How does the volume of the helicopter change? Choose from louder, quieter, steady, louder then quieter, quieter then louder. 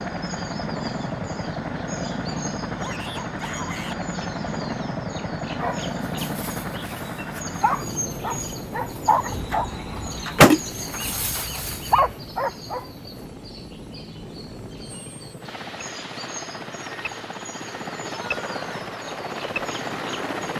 quieter then louder.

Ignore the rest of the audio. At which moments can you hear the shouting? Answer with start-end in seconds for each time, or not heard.
2.8-4.0, 18.1-18.9.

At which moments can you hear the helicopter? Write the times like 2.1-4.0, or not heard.
0.0-20.5.